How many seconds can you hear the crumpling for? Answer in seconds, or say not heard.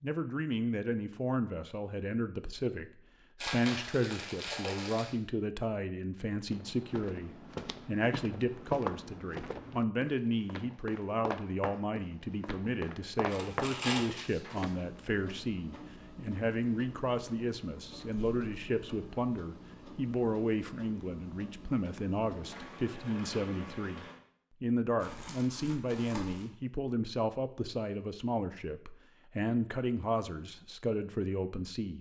4 s.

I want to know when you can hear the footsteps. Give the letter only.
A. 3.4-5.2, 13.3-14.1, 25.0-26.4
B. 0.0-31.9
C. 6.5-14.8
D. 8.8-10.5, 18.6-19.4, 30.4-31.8
C.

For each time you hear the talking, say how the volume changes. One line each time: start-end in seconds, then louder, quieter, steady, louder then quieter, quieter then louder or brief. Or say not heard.
0.0-31.9 steady.